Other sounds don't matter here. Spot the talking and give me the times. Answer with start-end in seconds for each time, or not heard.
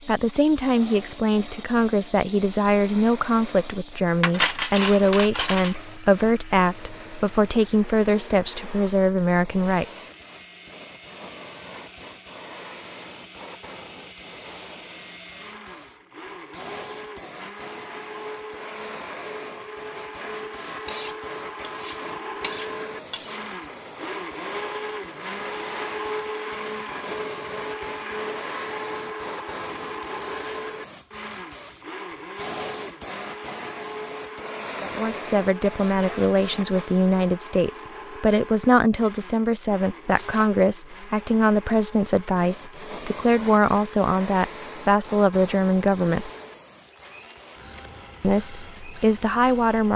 0.1-10.0, 34.8-46.3, 48.2-49.9.